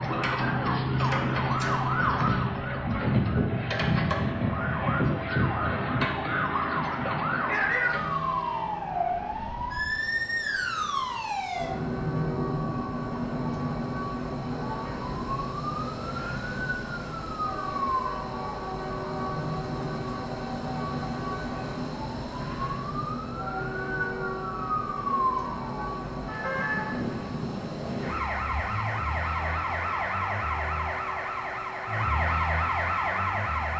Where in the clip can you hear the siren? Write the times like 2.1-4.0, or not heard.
0.0-33.7.